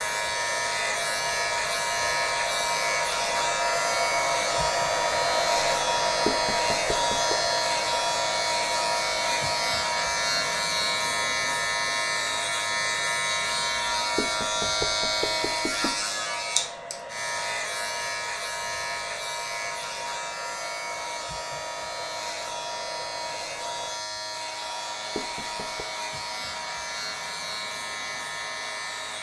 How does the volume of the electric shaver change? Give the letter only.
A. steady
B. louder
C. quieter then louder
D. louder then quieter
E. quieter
E.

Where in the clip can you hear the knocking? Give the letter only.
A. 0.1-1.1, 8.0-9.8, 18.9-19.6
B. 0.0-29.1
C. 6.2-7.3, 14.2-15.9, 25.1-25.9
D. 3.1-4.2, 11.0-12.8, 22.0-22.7
C.